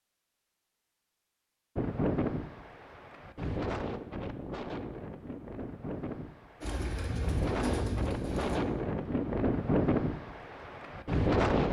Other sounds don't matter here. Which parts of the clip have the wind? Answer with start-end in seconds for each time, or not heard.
1.8-11.6.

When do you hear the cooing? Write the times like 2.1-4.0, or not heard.
6.6-8.6.